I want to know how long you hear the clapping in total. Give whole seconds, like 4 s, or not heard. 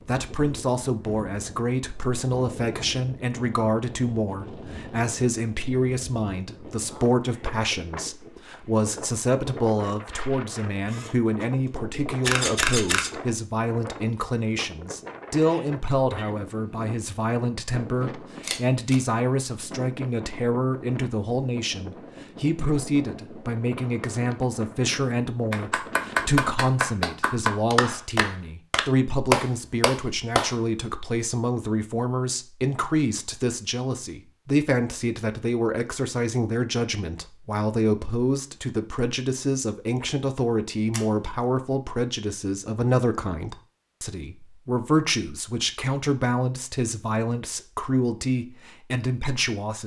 5 s.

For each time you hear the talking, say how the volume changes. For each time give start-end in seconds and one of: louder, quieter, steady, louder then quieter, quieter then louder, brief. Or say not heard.
0.1-49.8 steady.